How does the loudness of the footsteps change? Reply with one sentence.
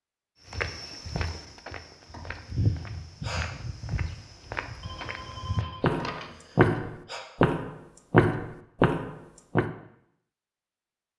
The loudness of the footsteps goes up.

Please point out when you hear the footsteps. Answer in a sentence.
The footsteps can be heard from 0.5 to 9.7 s.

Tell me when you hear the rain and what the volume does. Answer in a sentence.
You can't hear the rain here.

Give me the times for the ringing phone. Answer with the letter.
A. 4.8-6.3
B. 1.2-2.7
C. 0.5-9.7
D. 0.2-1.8
A.